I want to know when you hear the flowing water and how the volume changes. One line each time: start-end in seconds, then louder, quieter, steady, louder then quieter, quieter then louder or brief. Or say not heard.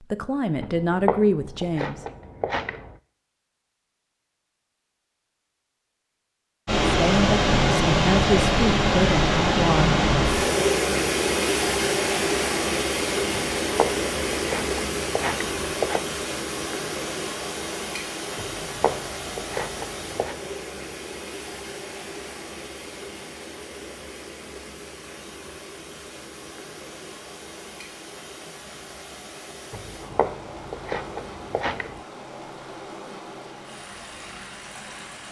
6.7-35.2 quieter.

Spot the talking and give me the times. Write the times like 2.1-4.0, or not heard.
0.0-2.0, 6.9-10.1.